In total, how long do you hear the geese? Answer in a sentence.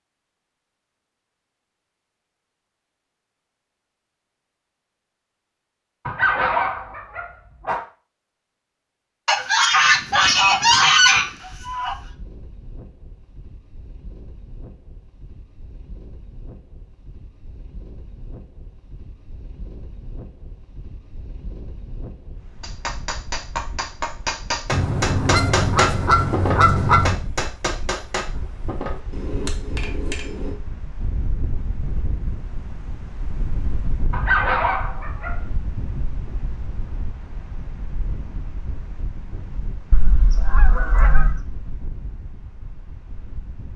You can hear the geese for 7 seconds altogether.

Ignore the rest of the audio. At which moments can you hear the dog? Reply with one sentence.
You can hear the dog from 6.0 to 7.8 s and from 34.1 to 35.4 s.